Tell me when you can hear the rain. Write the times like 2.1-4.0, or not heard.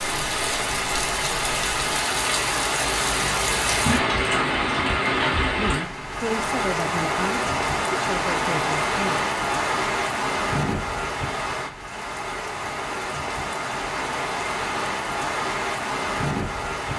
0.0-16.9.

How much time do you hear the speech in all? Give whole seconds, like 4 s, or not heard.
4 s.